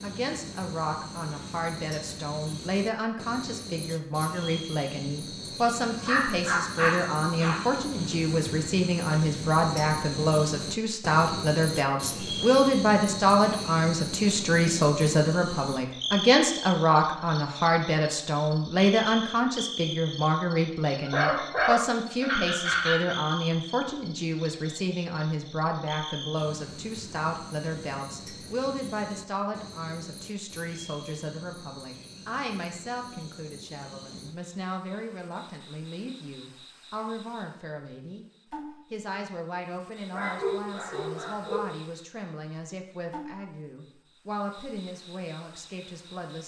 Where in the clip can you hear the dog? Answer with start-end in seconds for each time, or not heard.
6.0-7.6, 21.1-23.1, 40.1-41.6.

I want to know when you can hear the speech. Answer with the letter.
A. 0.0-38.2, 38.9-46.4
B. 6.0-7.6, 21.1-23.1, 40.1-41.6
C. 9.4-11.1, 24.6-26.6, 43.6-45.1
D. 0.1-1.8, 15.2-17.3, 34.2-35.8
A.